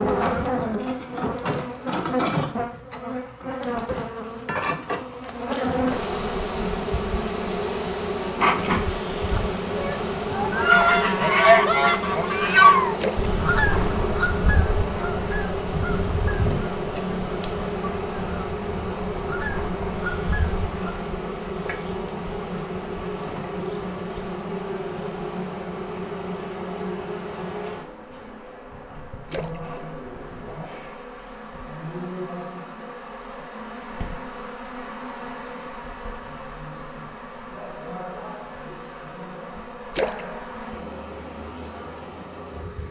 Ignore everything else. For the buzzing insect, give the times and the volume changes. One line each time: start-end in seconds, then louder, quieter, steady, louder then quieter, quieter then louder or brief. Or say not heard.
0.0-42.8 quieter.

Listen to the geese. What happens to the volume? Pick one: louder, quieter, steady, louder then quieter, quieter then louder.
quieter.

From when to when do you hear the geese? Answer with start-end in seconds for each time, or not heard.
9.3-20.9.